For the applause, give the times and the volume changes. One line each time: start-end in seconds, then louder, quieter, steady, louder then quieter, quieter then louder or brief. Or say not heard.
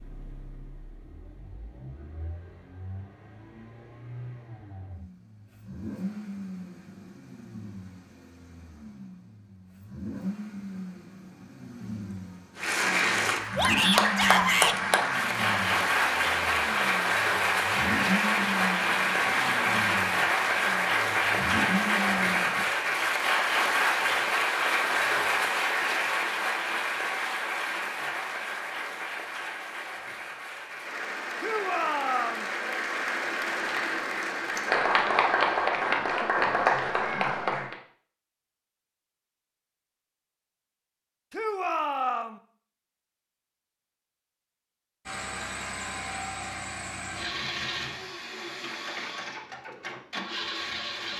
12.6-37.8 quieter then louder.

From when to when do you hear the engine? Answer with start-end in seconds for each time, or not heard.
0.0-22.6, 45.0-51.1.